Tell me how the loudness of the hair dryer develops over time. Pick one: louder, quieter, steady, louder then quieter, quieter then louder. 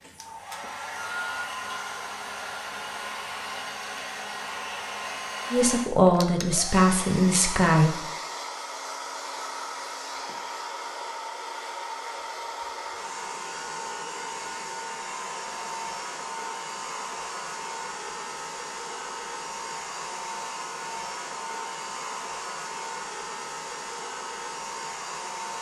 steady.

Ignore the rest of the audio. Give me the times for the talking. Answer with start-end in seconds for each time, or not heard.
5.5-8.1.